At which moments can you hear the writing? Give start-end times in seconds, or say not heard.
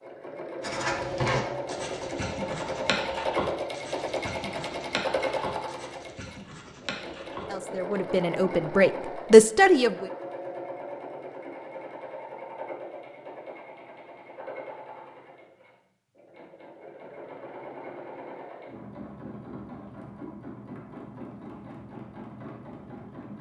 0.6-7.5.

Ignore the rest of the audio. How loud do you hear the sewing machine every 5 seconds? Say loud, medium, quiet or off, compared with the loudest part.
loud, loud, medium, medium, medium.